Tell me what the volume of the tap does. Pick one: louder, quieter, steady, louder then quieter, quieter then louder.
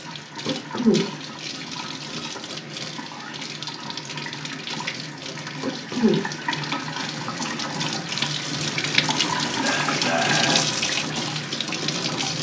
louder.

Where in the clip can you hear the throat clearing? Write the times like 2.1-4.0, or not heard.
0.5-1.1, 5.6-6.2, 9.4-10.6.